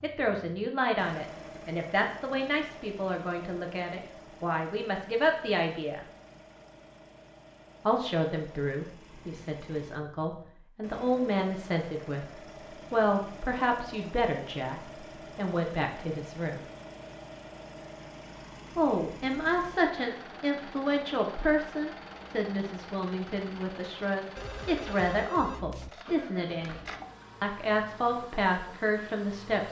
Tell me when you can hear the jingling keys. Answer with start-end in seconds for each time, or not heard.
not heard.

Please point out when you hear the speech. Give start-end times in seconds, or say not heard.
0.0-6.0, 7.8-16.6, 18.8-26.8, 27.4-29.6.